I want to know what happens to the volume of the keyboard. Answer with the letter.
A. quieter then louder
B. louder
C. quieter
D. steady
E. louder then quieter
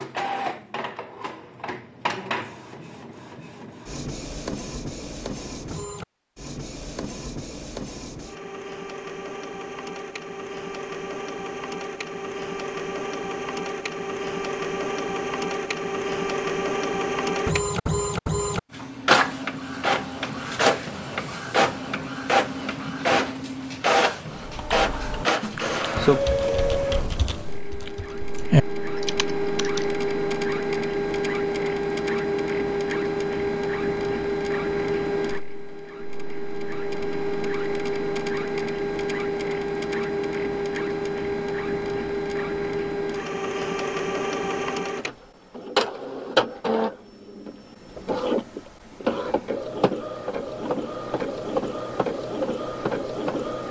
A.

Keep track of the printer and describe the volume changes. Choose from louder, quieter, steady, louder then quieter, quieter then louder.
louder.